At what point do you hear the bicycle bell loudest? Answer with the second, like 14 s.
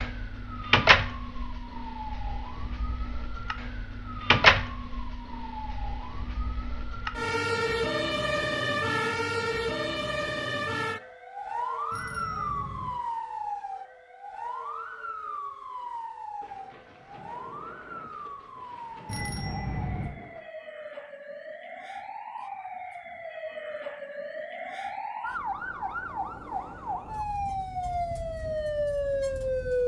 20 s.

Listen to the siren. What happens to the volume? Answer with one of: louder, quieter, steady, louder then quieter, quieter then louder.
quieter then louder.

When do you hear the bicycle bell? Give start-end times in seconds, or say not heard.
11.9-12.9, 19.1-20.1.